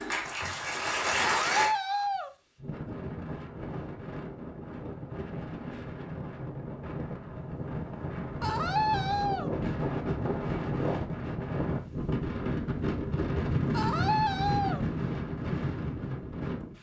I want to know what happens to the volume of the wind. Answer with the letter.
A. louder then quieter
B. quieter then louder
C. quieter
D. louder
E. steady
D.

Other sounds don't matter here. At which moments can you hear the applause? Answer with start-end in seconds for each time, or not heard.
0.0-1.8.